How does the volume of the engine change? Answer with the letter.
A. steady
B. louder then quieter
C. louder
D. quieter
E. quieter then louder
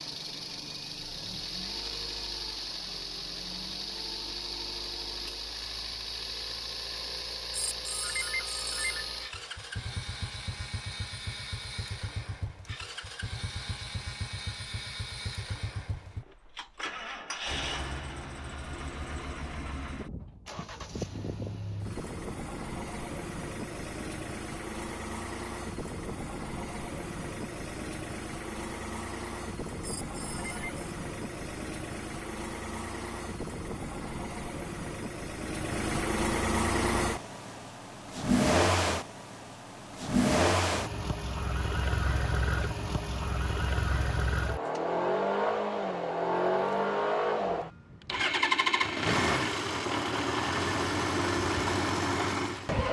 C.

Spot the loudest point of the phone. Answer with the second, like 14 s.
8 s.